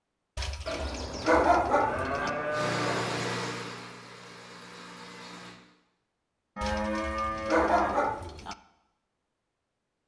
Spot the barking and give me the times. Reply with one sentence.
You can hear the barking from 0.3 to 2.3 s and from 6.6 to 8.6 s.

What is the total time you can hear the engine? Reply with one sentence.
The engine can be heard for 3 seconds in total.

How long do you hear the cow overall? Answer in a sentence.
You can hear the cow for 4 seconds altogether.